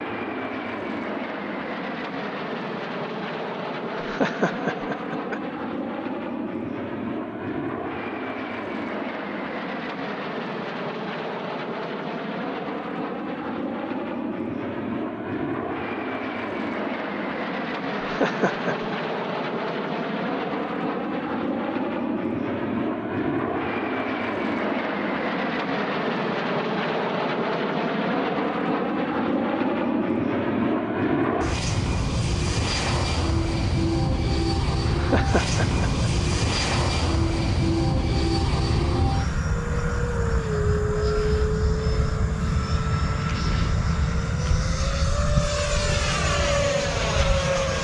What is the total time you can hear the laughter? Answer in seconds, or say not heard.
4 s.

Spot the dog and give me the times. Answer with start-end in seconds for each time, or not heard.
not heard.